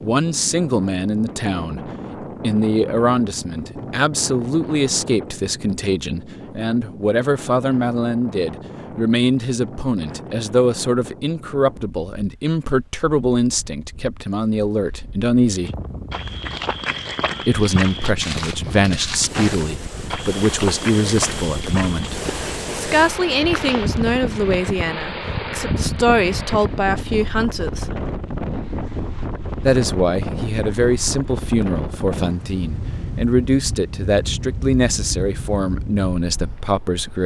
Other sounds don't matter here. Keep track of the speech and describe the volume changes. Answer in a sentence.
The volume of the speech stays about the same.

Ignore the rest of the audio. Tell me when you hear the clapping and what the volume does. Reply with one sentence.
You can't hear the clapping here.